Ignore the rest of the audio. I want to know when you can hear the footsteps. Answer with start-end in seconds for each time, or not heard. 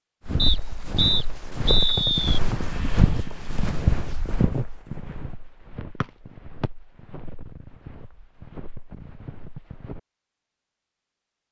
0.2-10.0.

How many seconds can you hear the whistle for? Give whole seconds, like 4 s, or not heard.
3 s.